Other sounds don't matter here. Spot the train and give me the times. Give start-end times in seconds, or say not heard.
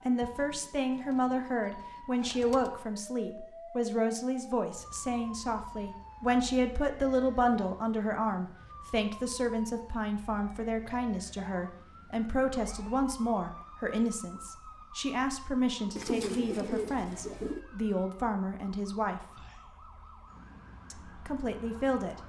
not heard.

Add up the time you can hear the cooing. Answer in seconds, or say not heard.
4 s.